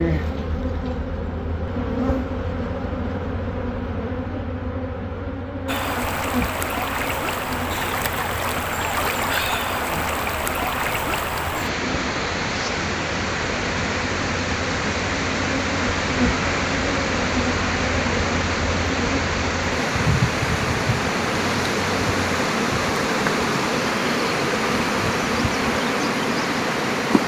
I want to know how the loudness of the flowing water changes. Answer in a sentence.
The loudness of the flowing water stays about the same.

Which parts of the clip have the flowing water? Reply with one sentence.
The flowing water can be heard from 5.7 to 27.2 s.